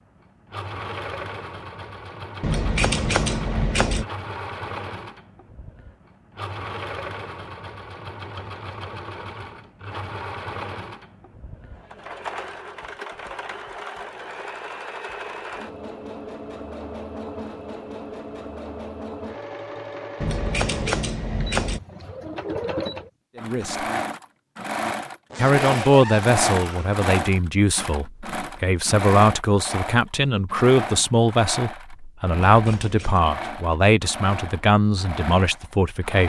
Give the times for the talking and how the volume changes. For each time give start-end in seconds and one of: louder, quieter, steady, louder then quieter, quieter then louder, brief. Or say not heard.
23.4-23.9 brief
25.4-36.2 steady.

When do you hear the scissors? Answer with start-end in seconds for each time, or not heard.
2.4-4.0, 20.2-21.8, 32.5-33.2.